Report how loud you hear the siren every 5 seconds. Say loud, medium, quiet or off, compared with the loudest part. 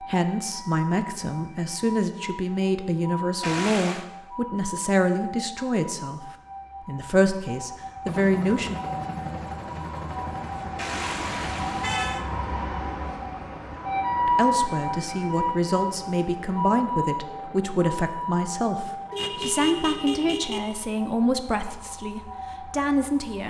medium, medium, loud, loud, quiet.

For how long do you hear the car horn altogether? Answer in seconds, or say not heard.
4 s.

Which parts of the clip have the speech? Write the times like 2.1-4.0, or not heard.
0.0-8.8, 14.2-23.4.